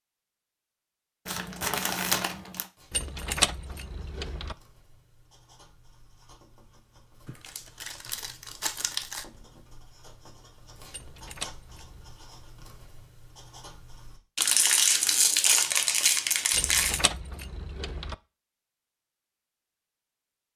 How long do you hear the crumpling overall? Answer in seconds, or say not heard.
6 s.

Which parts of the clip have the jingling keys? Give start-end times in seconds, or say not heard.
2.9-4.5, 10.9-12.1, 16.5-18.1.